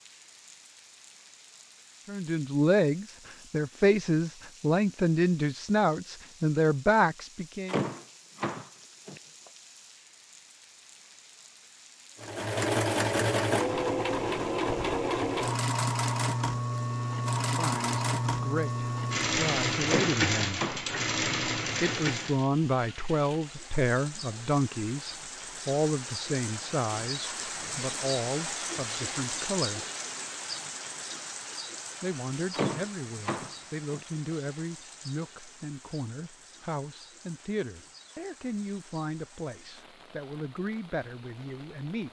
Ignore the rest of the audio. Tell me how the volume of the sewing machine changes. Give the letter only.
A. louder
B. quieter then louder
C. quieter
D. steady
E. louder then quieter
D.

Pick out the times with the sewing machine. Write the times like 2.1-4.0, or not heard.
12.2-22.5.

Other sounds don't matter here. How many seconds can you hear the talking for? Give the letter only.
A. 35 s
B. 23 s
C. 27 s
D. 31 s
C.